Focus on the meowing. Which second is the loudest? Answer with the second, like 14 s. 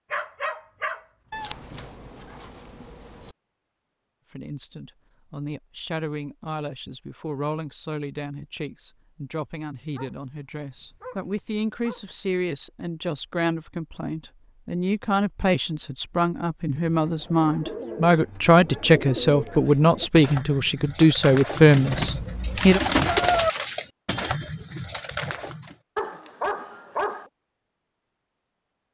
23 s.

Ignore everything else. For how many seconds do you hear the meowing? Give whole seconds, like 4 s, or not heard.
4 s.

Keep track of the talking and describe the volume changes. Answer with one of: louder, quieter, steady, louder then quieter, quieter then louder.
louder.